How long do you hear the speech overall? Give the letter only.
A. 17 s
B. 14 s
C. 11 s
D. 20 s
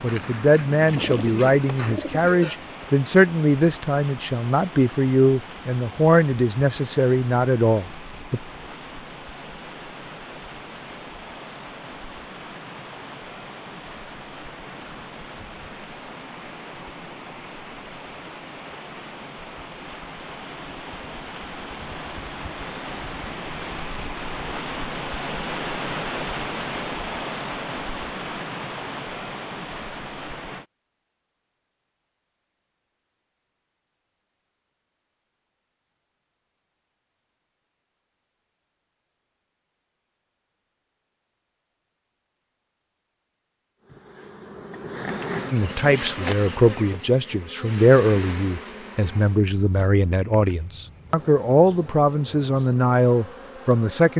A.